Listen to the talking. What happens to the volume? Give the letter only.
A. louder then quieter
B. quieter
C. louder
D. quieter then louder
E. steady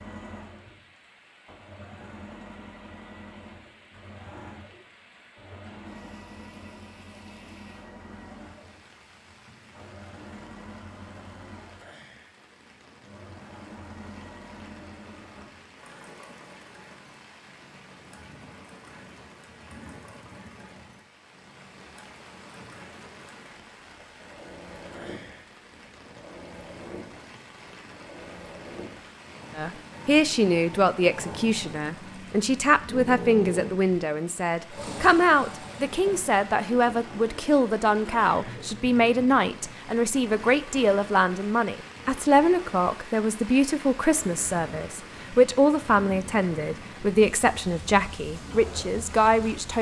E.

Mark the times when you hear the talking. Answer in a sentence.
You can hear the talking from 29.6 to 49.7 s.